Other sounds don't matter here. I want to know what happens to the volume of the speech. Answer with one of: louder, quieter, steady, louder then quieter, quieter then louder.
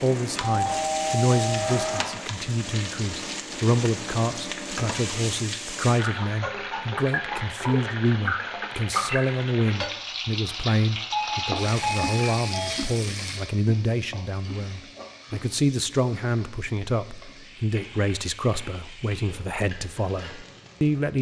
steady.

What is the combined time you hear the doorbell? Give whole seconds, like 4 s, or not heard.
3 s.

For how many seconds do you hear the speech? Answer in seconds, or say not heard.
21 s.